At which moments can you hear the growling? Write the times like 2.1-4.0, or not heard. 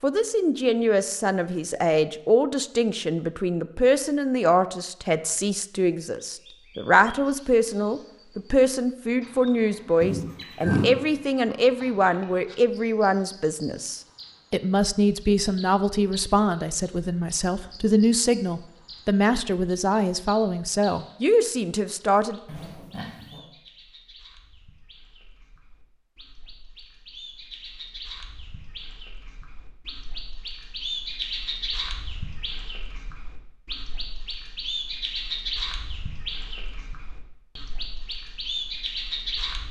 10.0-10.9, 22.4-23.4.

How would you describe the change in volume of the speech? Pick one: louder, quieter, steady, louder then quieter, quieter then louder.
steady.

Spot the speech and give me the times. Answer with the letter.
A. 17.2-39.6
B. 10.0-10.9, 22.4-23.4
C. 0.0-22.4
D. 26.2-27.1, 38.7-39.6
C.